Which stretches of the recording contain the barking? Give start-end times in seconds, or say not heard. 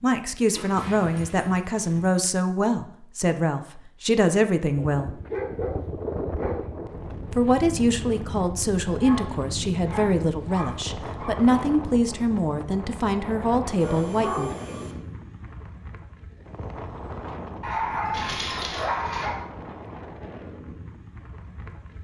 0.5-2.1, 4.8-6.6, 9.0-11.3, 13.8-14.9, 17.6-19.4.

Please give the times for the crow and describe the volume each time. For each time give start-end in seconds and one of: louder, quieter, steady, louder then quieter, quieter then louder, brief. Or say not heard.
not heard.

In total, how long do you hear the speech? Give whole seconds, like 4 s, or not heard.
12 s.